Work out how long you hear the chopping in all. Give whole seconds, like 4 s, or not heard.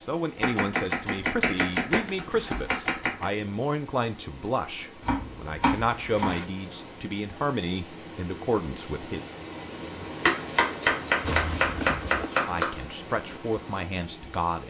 7 s.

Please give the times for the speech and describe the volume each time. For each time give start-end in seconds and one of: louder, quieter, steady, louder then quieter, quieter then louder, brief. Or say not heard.
0.0-9.3 steady
12.4-14.6 brief.